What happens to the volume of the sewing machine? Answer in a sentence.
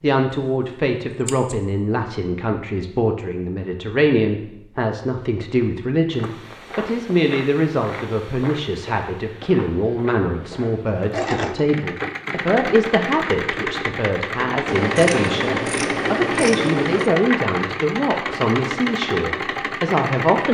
The loudness of the sewing machine stays about the same.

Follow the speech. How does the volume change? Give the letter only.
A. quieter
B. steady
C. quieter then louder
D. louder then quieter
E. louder
B.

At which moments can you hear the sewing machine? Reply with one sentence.
The sewing machine can be heard from 11.1 to 20.4 s.